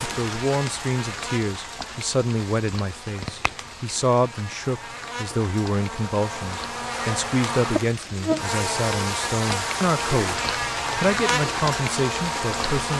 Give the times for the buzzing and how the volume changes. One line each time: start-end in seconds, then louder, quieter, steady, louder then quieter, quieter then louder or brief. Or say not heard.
0.0-12.9 louder.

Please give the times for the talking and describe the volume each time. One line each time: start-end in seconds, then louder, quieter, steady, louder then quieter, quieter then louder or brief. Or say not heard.
0.0-12.9 steady.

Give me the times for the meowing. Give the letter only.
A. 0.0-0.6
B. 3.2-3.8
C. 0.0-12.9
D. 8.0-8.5
B.